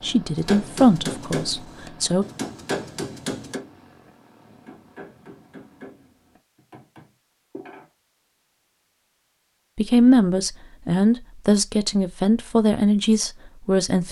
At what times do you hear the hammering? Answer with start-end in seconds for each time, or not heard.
0.3-7.9.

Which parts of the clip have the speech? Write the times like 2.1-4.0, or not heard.
0.0-2.2, 9.8-14.0.